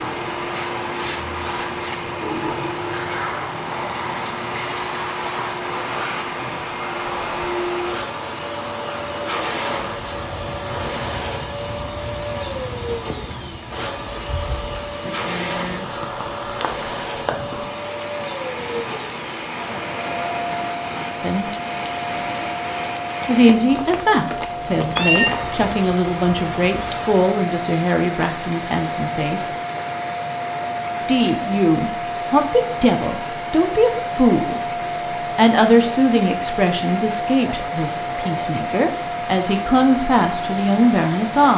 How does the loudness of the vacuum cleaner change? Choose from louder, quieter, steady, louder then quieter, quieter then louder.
steady.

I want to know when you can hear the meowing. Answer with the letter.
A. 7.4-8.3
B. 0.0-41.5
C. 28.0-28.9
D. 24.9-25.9
D.